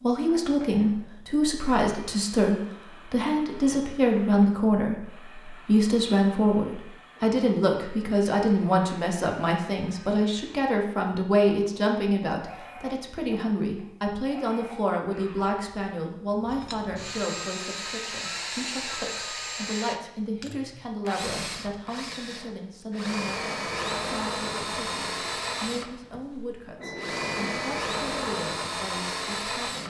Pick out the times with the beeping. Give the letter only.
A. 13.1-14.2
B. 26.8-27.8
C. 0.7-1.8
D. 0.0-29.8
B.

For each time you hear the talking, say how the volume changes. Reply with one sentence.
You can hear the talking from 0.0 to 29.8 s, getting quieter.